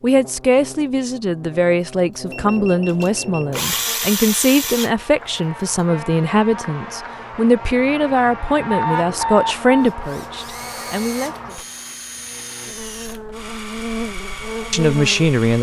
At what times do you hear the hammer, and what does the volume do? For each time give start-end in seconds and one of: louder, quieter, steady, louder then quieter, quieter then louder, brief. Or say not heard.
not heard.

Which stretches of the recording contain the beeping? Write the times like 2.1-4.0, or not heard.
2.3-3.6, 8.7-9.9.